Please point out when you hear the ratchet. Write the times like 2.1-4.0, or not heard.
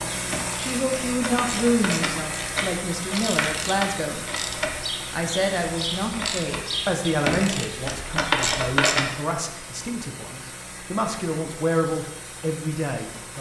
0.1-9.1.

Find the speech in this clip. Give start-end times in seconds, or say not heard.
0.0-4.2, 5.1-13.3.